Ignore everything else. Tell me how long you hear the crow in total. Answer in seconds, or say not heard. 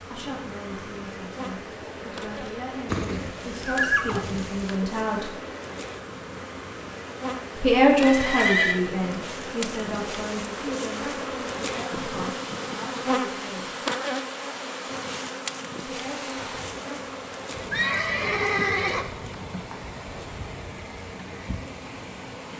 not heard.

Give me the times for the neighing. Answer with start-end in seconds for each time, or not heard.
2.9-4.8, 8.0-8.8, 17.7-19.1.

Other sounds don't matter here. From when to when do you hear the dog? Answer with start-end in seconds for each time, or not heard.
not heard.